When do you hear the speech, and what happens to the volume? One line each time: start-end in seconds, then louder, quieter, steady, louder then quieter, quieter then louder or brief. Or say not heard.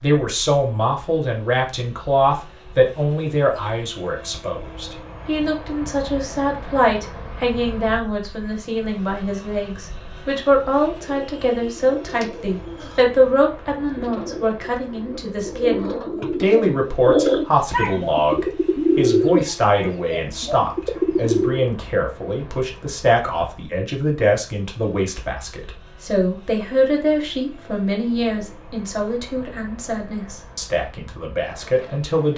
0.0-32.3 steady.